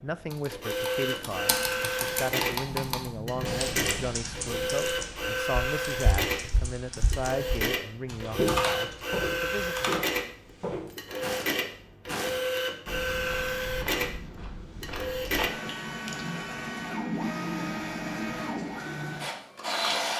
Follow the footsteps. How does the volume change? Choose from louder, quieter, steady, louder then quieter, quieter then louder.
louder then quieter.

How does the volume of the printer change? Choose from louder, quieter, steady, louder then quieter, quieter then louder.
steady.